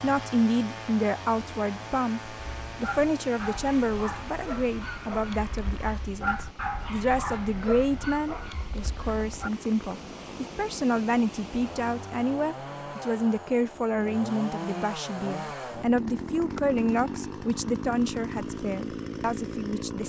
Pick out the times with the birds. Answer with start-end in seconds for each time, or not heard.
not heard.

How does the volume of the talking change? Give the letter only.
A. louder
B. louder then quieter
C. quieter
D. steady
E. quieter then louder
D.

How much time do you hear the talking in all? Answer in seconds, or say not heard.
20 s.